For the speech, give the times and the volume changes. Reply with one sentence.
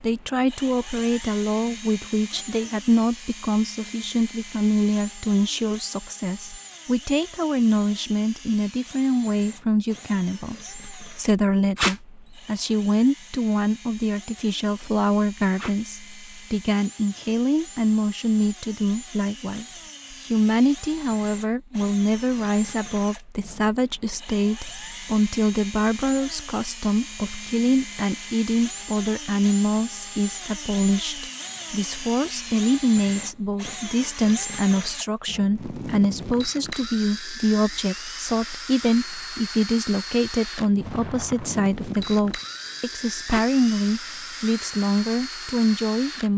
The speech can be heard from 0.0 to 46.3 s, at a steady volume.